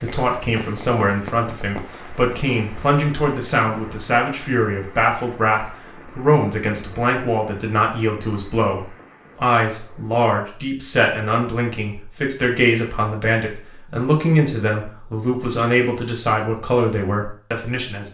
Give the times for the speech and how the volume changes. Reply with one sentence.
You can hear the speech from 0.0 to 18.0 s, at a steady volume.